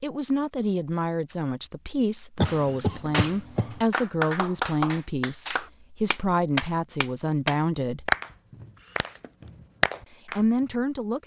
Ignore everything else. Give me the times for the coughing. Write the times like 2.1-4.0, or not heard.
2.4-3.8.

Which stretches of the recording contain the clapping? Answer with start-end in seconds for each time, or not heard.
2.5-10.8.